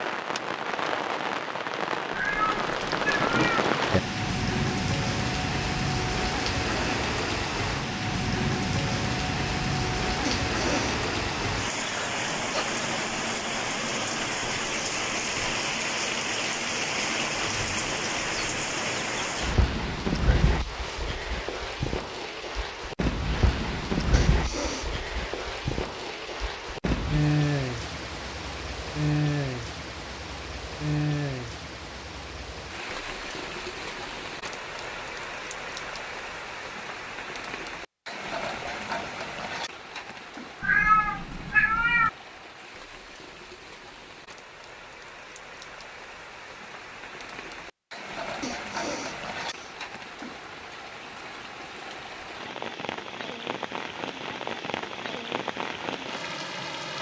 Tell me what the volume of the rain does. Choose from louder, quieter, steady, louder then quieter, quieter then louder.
quieter.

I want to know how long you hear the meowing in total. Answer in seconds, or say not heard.
3 s.